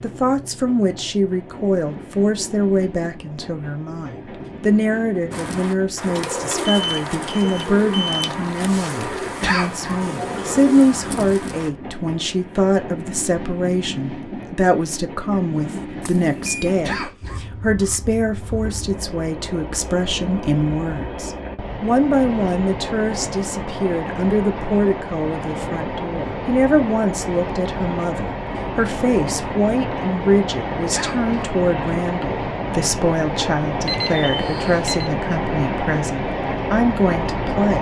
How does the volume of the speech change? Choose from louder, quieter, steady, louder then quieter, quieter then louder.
steady.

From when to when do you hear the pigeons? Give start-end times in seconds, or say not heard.
5.3-11.7.